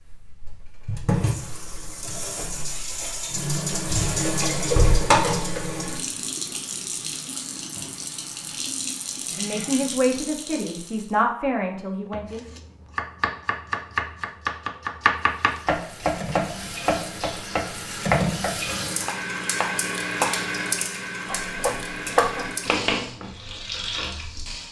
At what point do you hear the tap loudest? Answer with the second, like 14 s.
5 s.